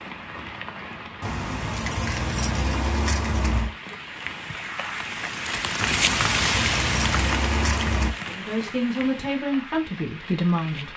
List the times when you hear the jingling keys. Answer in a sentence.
The jingling keys can be heard from 1.2 to 3.8 s and from 5.8 to 8.2 s.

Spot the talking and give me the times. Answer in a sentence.
The talking can be heard from 8.2 to 10.9 s.